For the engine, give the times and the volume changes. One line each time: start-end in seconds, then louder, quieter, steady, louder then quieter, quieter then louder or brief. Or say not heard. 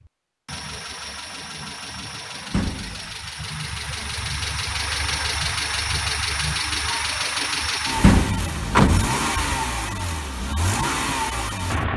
0.0-11.9 louder.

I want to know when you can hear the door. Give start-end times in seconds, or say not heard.
2.5-3.1, 8.0-9.1.